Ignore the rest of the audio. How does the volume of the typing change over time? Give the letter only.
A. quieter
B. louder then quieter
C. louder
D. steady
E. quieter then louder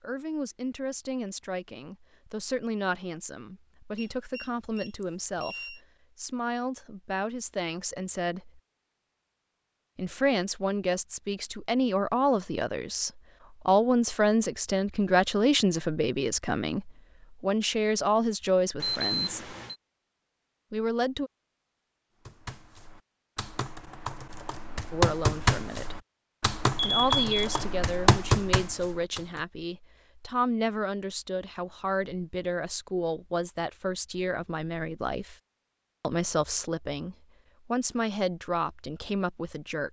C.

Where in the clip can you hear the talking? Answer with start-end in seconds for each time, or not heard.
0.0-8.6, 9.9-19.5, 20.7-21.3, 24.9-25.9, 26.8-35.4, 36.0-39.8.